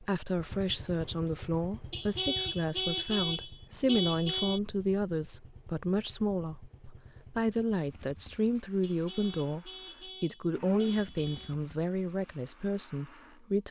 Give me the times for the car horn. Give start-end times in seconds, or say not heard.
1.9-4.6, 8.8-11.6.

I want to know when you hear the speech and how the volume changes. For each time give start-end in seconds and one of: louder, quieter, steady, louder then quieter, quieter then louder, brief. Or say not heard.
0.0-13.6 steady.